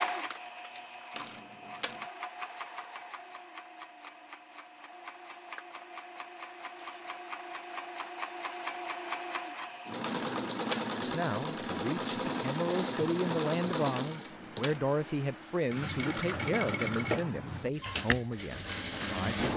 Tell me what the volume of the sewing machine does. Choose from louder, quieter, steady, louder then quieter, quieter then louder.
louder.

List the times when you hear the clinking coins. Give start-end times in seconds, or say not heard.
1.1-2.0, 10.0-10.8, 13.9-14.8.